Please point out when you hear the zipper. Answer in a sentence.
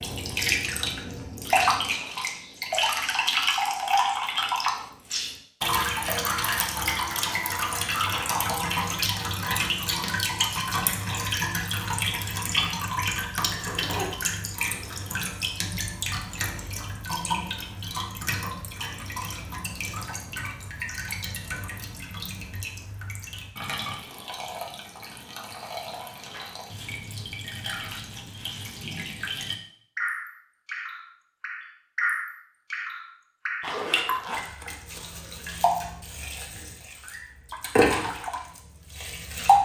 The zipper can be heard from 13.6 to 15.1 s and from 33.6 to 34.4 s.